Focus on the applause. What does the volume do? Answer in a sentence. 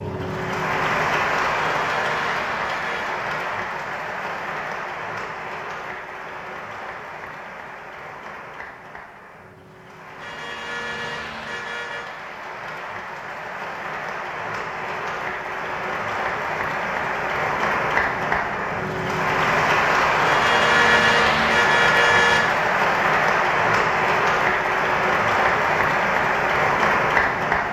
The volume of the applause goes down, then up.